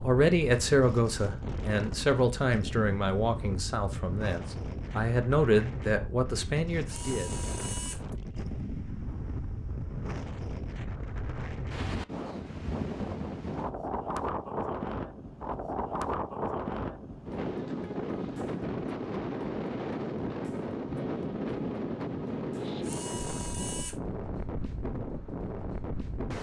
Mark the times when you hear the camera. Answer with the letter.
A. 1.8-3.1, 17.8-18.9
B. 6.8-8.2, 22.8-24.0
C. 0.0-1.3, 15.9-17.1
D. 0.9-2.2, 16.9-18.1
B.